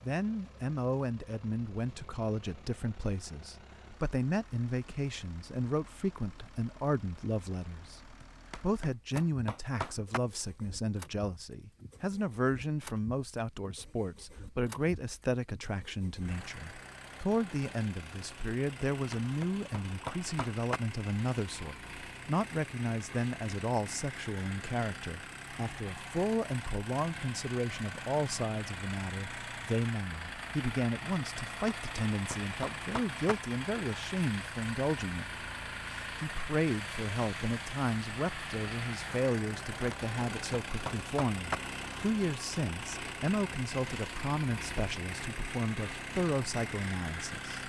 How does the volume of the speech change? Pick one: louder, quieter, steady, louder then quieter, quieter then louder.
steady.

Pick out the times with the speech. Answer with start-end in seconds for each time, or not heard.
0.0-47.6.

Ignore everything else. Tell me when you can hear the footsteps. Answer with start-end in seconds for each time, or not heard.
not heard.